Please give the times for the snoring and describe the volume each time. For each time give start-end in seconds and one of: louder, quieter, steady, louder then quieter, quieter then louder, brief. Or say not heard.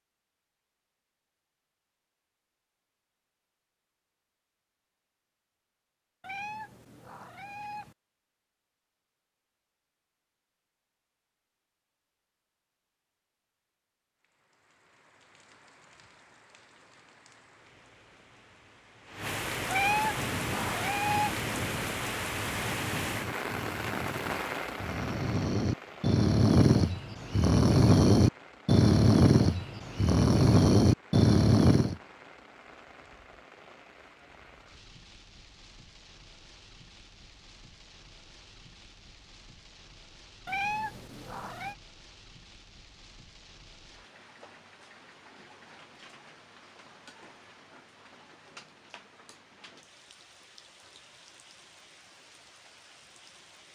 20.1-31.9 louder.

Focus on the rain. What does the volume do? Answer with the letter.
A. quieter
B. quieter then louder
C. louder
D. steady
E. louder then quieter
A.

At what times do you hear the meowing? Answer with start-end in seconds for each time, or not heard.
6.2-8.0, 19.7-21.4, 40.5-41.8.